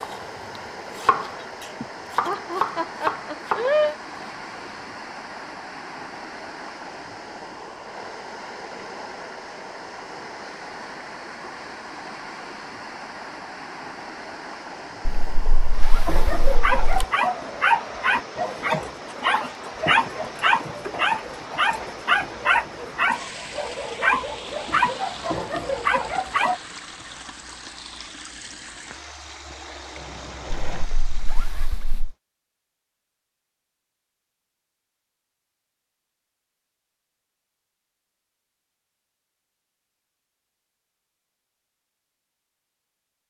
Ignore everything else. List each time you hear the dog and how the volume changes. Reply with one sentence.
You can hear the dog from 16.1 to 26.6 s, at a steady volume.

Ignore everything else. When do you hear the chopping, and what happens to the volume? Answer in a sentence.
The chopping can be heard from 0.0 to 4.7 s, getting quieter then louder.